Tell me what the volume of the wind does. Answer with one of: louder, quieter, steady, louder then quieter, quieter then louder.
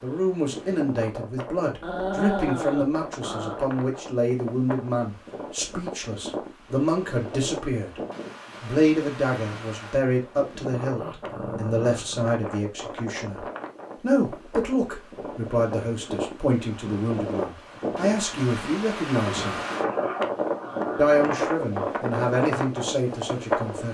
louder.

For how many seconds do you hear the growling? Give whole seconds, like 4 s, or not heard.
6 s.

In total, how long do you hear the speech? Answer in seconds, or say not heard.
22 s.